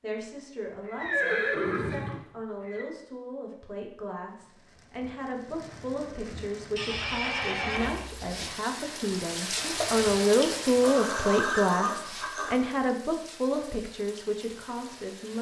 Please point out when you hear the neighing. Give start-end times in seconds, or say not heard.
0.8-2.9, 6.8-8.4, 10.8-12.6.